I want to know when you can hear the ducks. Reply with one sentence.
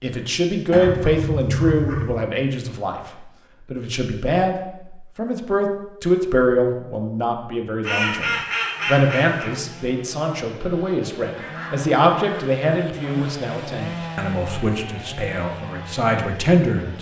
The ducks can be heard from 0.7 to 2.2 s, from 7.8 to 9.6 s and from 11.3 to 13.4 s.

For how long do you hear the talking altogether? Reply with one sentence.
The talking can be heard for 17 seconds in total.